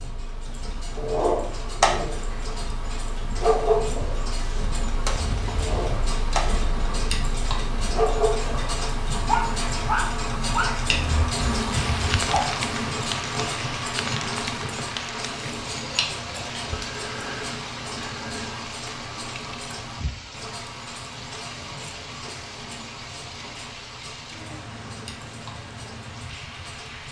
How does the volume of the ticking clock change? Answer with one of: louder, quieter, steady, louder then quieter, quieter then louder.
louder then quieter.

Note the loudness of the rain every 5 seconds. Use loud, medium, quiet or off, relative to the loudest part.
medium, medium, loud, medium, medium, medium.